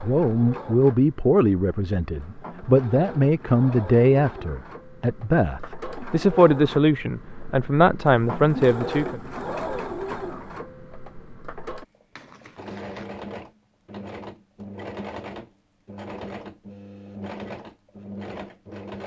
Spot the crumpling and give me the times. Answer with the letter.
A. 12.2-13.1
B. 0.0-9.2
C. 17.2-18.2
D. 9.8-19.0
A.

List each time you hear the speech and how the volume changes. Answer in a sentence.
You can hear the speech from 0.0 to 9.2 s, at a steady volume.